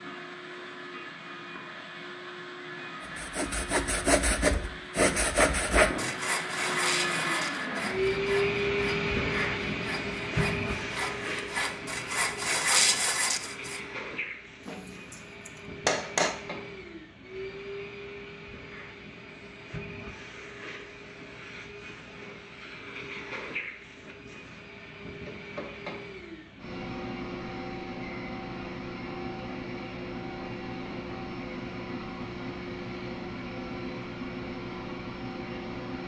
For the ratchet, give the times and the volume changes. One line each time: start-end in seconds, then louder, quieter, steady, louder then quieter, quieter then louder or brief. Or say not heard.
not heard.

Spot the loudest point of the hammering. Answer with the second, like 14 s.
16 s.